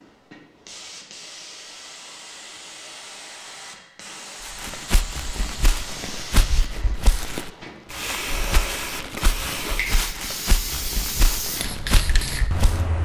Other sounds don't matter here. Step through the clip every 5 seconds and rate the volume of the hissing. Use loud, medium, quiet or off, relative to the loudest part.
medium, loud, loud.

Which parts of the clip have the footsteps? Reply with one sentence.
The footsteps can be heard from 4.4 to 12.8 s.